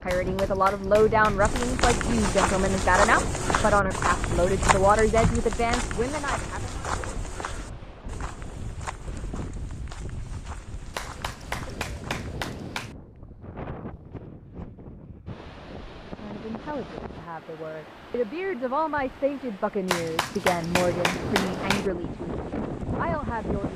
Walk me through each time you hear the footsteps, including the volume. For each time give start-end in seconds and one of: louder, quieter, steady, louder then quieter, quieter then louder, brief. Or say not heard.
1.4-12.3 quieter.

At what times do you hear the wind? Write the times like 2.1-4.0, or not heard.
0.0-23.7.